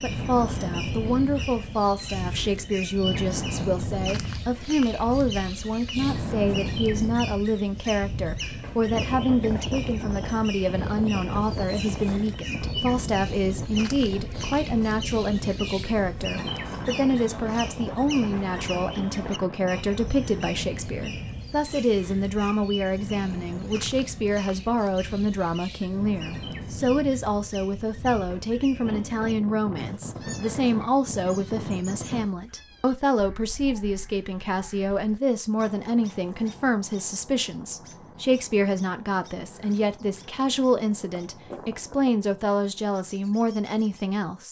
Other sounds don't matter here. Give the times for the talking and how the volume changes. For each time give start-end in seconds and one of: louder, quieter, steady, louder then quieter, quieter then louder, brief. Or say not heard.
0.0-44.4 steady.